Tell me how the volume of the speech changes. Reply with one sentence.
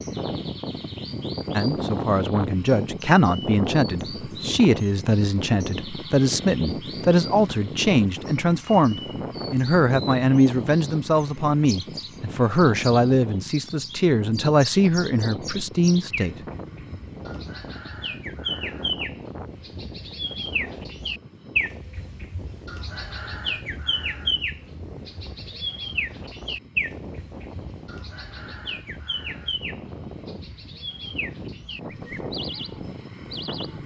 The volume of the speech stays about the same.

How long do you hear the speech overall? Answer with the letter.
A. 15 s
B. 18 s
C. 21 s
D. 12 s
A.